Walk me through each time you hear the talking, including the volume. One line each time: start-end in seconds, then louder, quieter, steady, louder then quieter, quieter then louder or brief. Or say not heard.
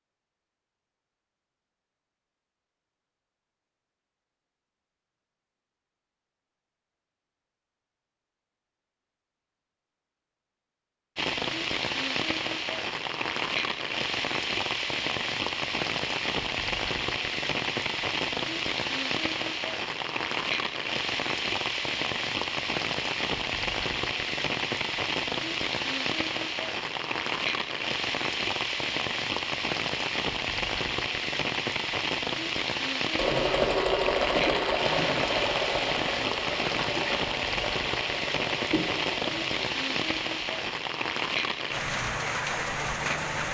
not heard.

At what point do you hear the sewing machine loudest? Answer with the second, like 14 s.
34 s.